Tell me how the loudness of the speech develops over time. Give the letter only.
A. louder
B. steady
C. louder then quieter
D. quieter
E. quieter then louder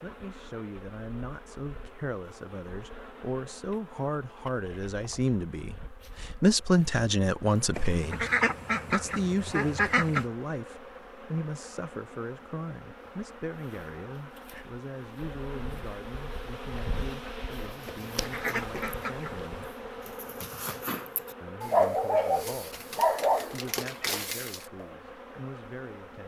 C.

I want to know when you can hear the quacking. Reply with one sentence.
You can hear the quacking from 7.7 to 10.2 s and from 17.9 to 19.5 s.